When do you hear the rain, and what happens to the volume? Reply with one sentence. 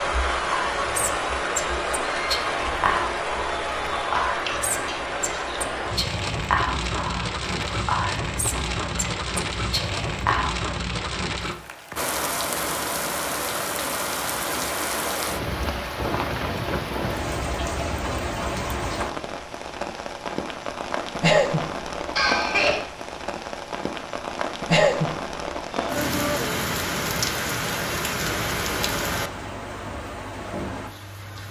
The rain can be heard from 0.0 to 31.4 s, at a steady volume.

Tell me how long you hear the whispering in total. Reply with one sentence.
The whispering can be heard for 10 seconds in total.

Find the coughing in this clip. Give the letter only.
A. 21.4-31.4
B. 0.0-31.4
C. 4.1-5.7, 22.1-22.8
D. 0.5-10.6
C.